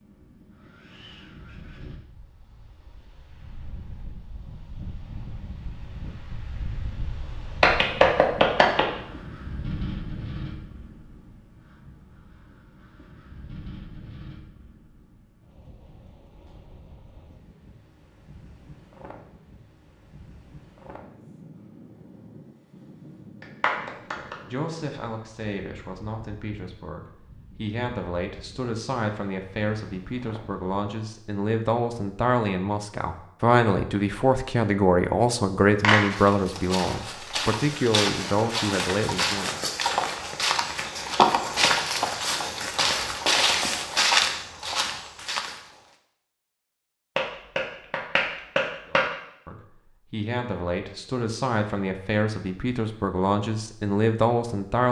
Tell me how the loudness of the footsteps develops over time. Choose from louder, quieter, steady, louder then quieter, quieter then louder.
louder.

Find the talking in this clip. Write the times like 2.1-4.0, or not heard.
23.9-39.6, 48.9-54.8.